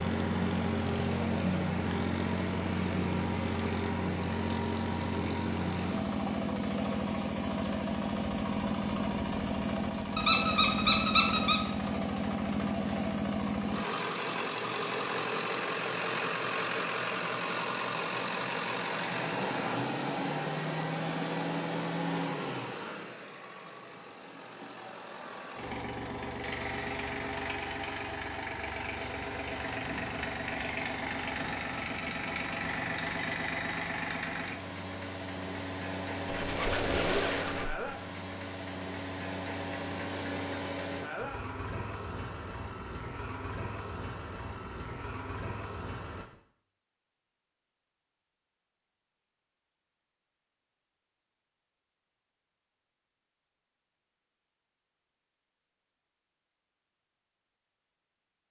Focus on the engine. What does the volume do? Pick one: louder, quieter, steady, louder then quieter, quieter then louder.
quieter.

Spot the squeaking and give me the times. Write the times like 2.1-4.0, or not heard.
10.2-11.6, 36.2-37.9.